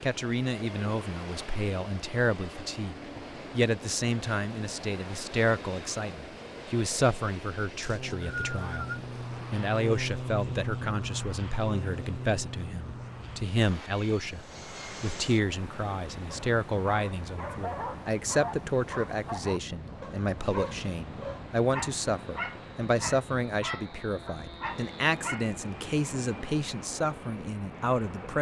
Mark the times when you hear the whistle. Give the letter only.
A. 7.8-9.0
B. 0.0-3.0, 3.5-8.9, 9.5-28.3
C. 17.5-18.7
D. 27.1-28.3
A.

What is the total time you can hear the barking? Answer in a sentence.
The barking can be heard for 9 seconds in total.